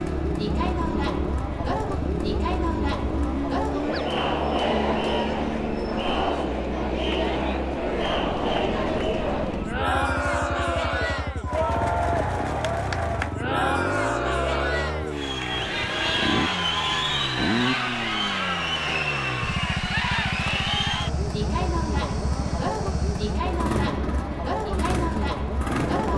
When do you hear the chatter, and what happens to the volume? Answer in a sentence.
The chatter can be heard from 0.0 to 26.1 s, at a steady volume.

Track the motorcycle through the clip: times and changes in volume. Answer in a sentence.
You can hear the motorcycle from 0.0 to 26.1 s, at a steady volume.